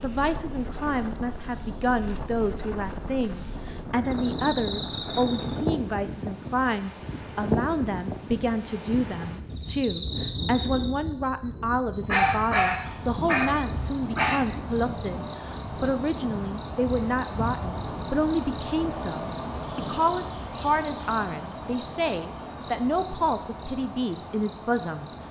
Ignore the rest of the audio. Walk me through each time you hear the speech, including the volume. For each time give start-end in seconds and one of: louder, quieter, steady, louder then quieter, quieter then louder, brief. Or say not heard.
0.0-25.1 steady.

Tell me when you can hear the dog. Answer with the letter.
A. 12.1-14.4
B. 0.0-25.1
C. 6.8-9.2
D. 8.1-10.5
A.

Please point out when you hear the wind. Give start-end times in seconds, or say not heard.
0.0-20.0.